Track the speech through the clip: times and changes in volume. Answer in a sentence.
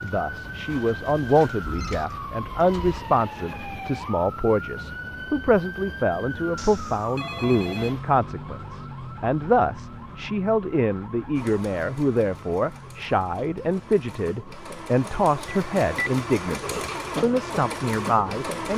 The speech can be heard from 0.0 to 18.7 s, at a steady volume.